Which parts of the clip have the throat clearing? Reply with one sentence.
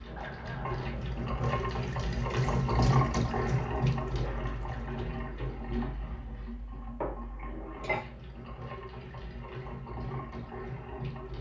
The throat clearing can be heard from 0.1 to 0.9 s and from 7.5 to 8.1 s.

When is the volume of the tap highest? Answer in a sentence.
The volume of the tap peaks at 3 seconds.